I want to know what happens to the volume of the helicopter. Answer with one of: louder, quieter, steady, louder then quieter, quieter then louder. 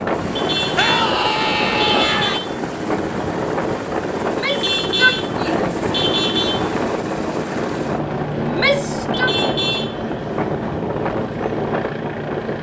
steady.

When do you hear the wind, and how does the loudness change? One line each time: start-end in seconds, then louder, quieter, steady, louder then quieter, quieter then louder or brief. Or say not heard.
0.0-12.5 steady.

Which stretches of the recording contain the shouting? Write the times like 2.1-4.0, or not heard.
0.8-2.4, 4.2-5.7, 8.4-9.3.